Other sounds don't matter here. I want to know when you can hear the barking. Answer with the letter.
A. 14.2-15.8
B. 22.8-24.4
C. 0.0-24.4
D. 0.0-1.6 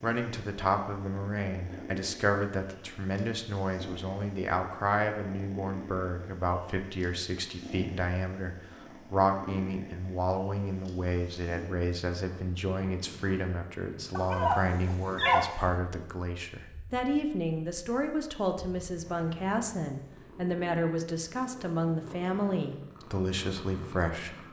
A.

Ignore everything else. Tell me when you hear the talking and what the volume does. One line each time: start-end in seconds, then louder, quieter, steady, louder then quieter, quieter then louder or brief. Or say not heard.
0.0-24.4 steady.